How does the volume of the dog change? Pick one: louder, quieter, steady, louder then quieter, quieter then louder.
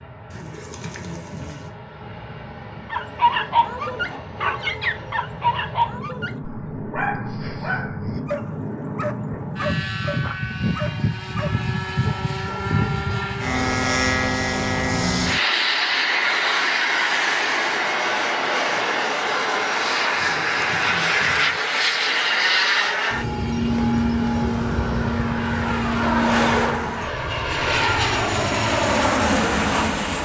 quieter.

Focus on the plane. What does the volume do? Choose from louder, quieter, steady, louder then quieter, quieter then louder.
louder.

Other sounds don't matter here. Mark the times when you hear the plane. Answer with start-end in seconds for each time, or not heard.
0.0-30.2.